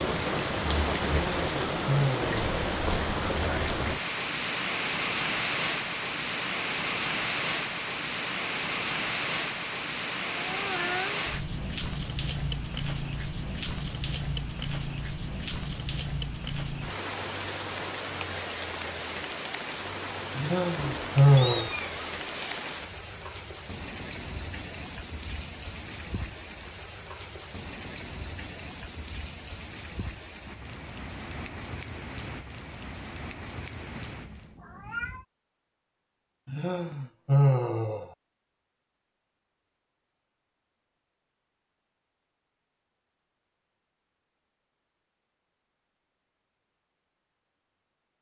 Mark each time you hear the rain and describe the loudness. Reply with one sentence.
You can hear the rain from 0.0 to 34.5 s, getting quieter.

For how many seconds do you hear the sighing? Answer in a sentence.
You can hear the sighing for 4 seconds altogether.